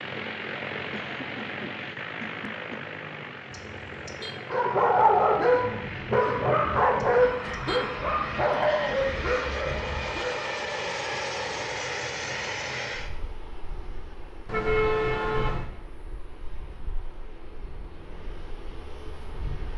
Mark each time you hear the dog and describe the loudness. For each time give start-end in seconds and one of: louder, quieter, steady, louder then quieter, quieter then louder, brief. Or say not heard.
4.3-10.4 quieter.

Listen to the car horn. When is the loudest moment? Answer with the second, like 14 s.
15 s.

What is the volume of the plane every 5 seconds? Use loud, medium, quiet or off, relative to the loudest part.
loud, loud, loud, quiet.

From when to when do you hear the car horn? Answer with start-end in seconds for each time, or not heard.
3.5-4.3, 7.0-8.0, 14.4-15.7.